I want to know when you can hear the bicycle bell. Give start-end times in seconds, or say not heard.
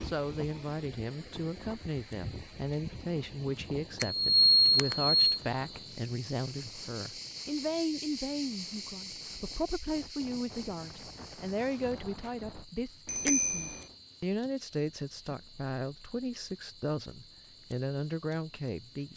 4.0-5.2, 13.1-13.8.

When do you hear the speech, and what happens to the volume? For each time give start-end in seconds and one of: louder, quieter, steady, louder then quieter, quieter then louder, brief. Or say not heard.
0.0-19.1 steady.